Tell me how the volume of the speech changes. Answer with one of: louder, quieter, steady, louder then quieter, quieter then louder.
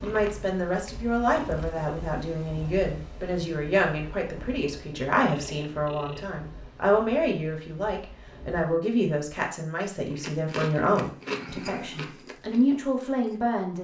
steady.